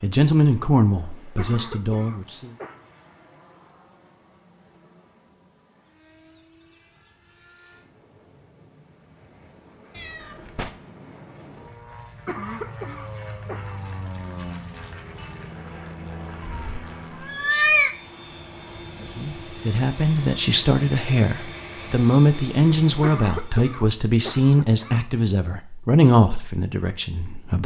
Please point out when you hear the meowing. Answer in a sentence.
You can hear the meowing from 9.9 to 10.7 s and from 16.4 to 17.9 s.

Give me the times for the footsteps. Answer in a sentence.
The footsteps can't be heard in this clip.